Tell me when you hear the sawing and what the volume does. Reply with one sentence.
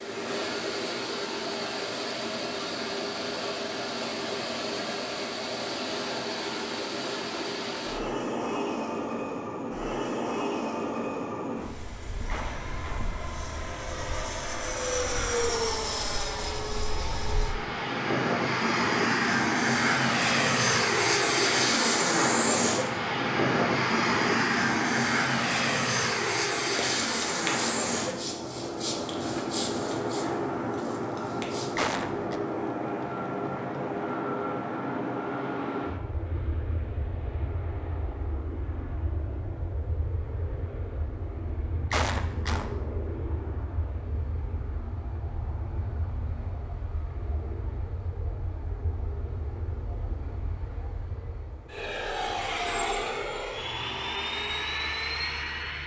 You can hear the sawing from 26.8 to 31.9 s, getting quieter.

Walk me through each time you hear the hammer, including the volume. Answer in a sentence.
The hammer can't be heard in this clip.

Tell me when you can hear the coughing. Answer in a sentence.
The coughing can be heard from 12.2 to 13.1 s, from 31.8 to 32.4 s and from 41.9 to 42.7 s.